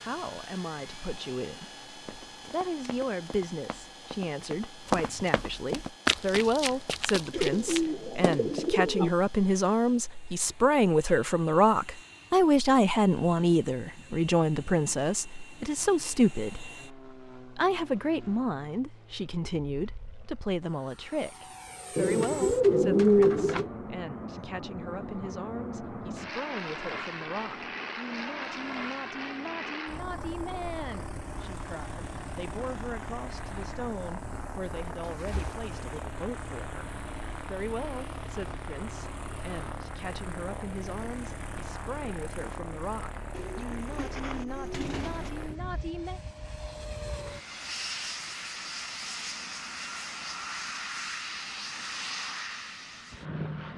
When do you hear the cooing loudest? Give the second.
23 s.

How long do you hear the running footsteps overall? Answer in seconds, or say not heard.
7 s.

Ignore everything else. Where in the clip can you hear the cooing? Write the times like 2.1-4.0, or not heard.
7.3-9.1, 21.9-23.7, 34.3-35.6, 43.3-45.3.